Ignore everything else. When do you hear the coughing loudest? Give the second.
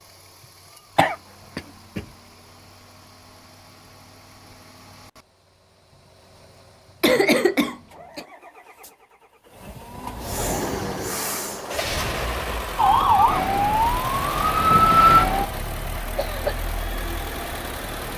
7 s.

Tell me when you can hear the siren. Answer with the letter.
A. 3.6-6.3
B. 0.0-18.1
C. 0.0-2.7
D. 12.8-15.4
D.